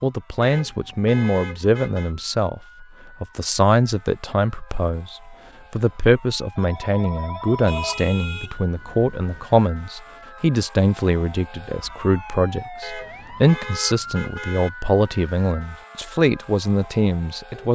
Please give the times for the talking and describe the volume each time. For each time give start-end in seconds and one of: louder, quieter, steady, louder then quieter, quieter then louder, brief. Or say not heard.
0.0-17.6 steady.